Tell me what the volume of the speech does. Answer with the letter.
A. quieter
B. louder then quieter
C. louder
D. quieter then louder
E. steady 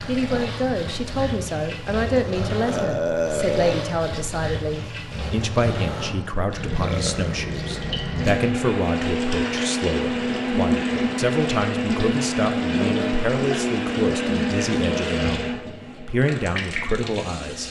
E.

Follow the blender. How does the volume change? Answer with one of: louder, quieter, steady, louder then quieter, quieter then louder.
steady.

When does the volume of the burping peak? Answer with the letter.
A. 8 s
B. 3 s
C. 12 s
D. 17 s
B.